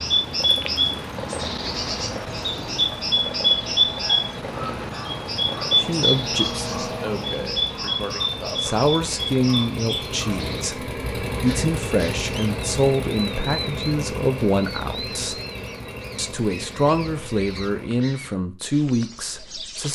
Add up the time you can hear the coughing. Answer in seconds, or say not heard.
2 s.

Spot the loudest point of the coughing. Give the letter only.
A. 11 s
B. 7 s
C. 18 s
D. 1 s
B.